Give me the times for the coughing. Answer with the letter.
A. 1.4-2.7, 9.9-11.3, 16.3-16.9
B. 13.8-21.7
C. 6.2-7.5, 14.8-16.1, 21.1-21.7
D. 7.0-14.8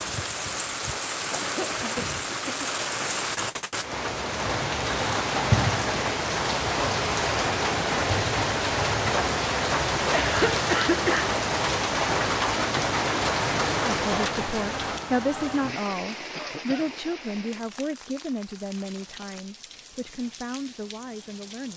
A.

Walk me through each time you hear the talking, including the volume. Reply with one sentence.
The talking can be heard from 13.8 to 21.7 s, getting quieter.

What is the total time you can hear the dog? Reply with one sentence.
The dog can't be heard in this clip.